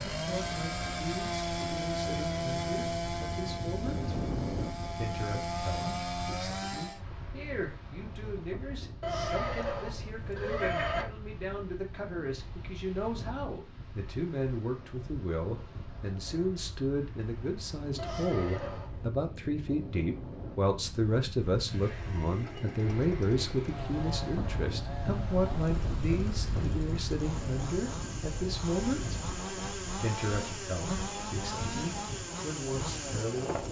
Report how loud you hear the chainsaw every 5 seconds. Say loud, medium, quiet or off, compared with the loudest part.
loud, loud, off, off, medium, medium, loud.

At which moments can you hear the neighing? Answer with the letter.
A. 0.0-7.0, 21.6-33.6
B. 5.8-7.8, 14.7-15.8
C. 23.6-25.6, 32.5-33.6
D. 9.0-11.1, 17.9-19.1
D.